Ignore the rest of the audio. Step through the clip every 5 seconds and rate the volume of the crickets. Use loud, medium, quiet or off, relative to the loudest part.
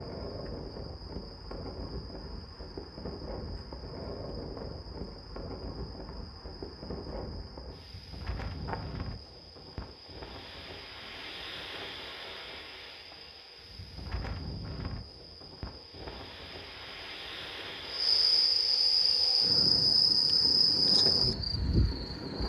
quiet, quiet, quiet, loud, loud.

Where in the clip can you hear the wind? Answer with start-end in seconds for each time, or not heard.
0.0-22.4.